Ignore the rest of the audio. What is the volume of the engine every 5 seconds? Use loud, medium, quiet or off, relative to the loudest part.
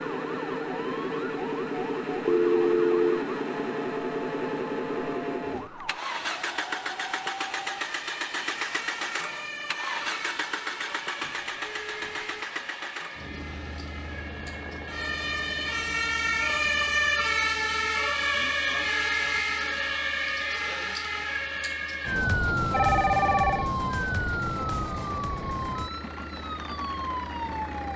loud, loud, medium, quiet, quiet, medium.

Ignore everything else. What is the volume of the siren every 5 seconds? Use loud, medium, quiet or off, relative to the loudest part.
quiet, quiet, quiet, loud, loud, medium.